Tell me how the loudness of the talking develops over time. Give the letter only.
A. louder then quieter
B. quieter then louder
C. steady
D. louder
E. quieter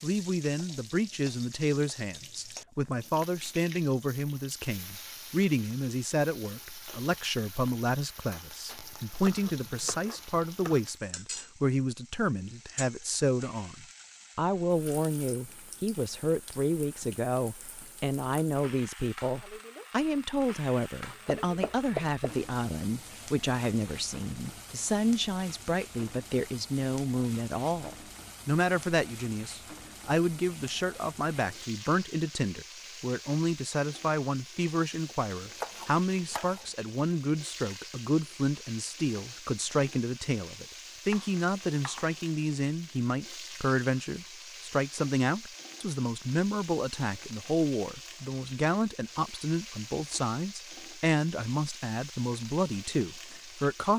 C.